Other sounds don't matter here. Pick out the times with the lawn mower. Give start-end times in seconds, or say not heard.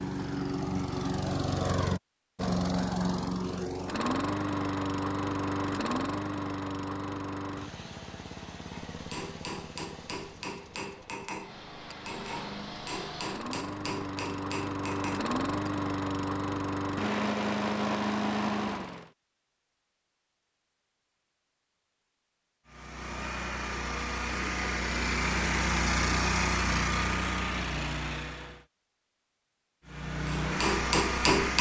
0.0-19.1, 22.6-28.6, 29.9-31.5.